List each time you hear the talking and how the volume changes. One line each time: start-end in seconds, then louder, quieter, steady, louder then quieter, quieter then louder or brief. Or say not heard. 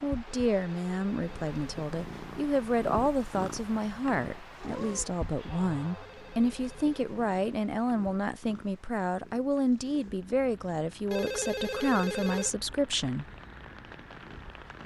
0.0-13.2 steady.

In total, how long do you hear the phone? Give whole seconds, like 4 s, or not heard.
4 s.